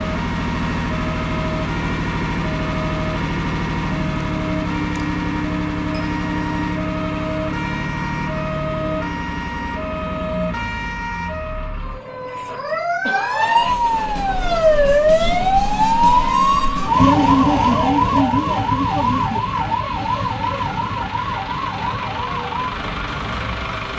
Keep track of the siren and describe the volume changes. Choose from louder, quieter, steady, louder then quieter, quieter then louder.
louder then quieter.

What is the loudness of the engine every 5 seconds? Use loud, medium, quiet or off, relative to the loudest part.
loud, loud, medium, quiet, medium.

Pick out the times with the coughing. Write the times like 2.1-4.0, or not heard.
13.0-13.8.